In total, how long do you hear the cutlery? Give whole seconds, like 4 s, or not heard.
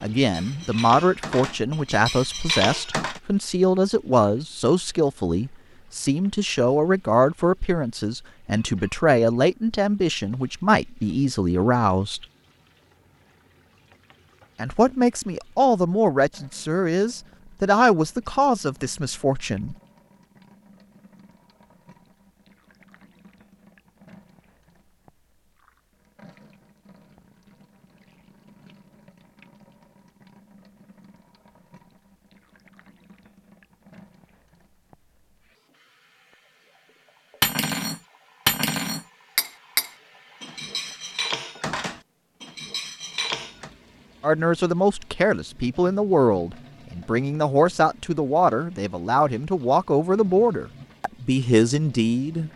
9 s.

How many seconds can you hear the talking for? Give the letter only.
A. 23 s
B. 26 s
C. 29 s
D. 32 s
B.